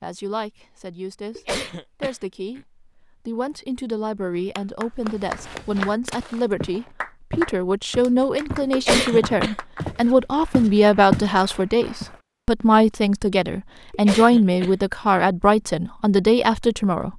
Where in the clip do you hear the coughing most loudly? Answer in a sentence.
The volume of the coughing peaks at 9 seconds.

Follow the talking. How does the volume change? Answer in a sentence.
The loudness of the talking goes up.